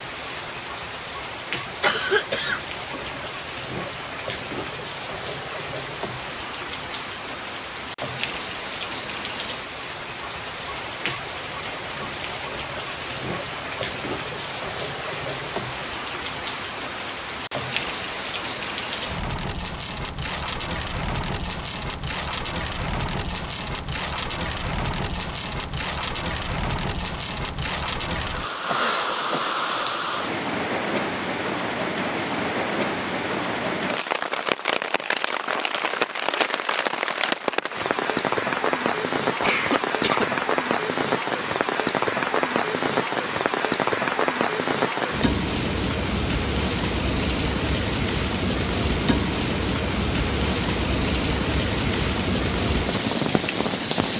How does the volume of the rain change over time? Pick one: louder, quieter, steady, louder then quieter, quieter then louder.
louder.